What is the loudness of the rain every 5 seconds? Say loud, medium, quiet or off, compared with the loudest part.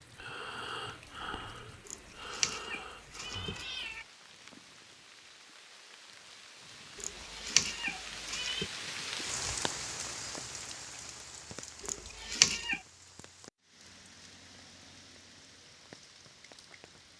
quiet, loud, medium, quiet.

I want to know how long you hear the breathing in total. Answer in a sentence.
You can hear the breathing for 4 seconds altogether.